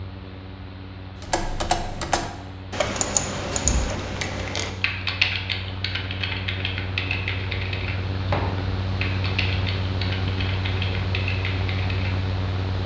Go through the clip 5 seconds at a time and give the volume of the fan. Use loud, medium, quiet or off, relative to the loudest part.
medium, loud, loud.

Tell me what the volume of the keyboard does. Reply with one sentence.
The loudness of the keyboard goes down.